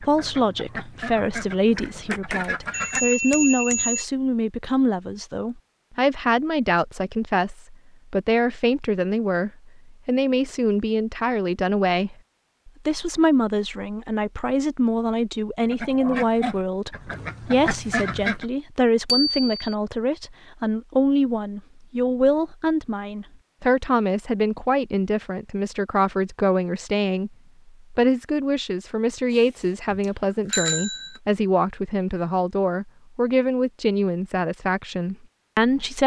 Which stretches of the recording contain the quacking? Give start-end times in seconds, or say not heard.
0.0-3.1, 15.6-18.4.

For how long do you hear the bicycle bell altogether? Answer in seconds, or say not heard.
4 s.